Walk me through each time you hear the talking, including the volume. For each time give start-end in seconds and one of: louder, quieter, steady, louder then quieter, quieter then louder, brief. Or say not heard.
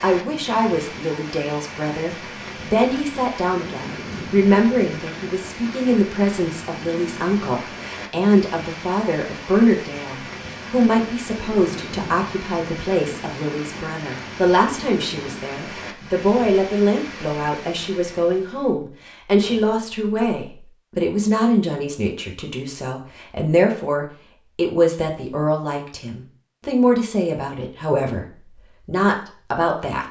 0.0-30.0 steady.